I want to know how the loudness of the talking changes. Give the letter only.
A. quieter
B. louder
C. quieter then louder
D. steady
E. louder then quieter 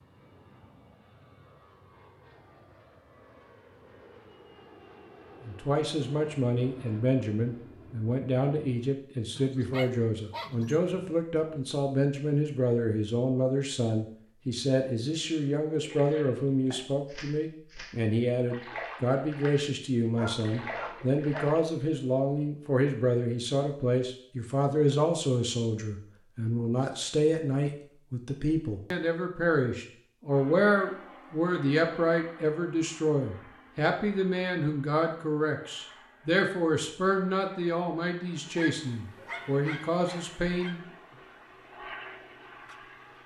D.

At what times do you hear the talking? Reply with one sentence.
You can hear the talking from 5.5 to 40.8 s.